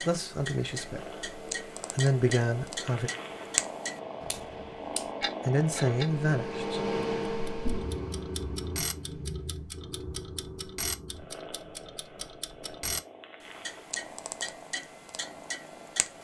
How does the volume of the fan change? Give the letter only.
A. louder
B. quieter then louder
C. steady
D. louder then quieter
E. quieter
D.